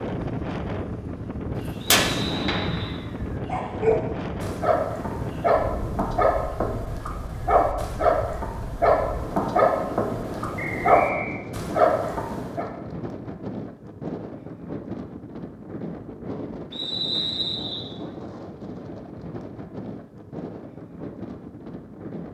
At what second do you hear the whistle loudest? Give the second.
17 s.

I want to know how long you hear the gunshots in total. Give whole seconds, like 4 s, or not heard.
2 s.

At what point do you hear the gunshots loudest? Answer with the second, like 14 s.
2 s.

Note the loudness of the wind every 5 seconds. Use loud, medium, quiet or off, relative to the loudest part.
loud, medium, loud, medium, medium.